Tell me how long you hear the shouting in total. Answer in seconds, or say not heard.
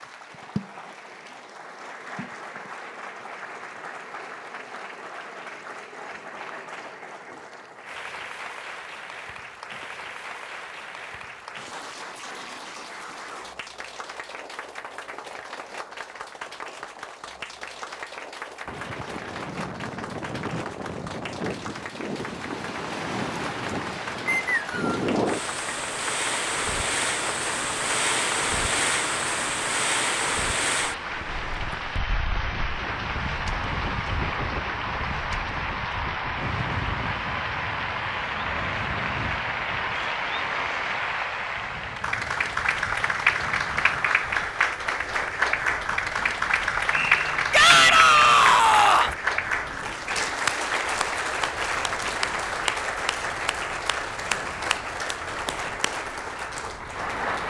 2 s.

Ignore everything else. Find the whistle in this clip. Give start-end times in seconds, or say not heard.
24.2-25.0, 46.9-48.5.